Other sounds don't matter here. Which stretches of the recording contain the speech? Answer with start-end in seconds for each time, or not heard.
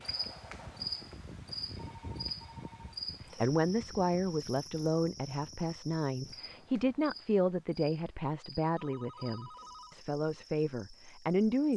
3.4-11.7.